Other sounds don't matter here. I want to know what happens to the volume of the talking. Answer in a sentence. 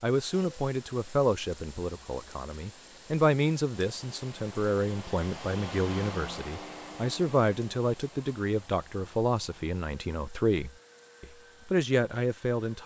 The volume of the talking stays about the same.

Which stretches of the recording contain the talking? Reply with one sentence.
You can hear the talking from 0.0 to 12.8 s.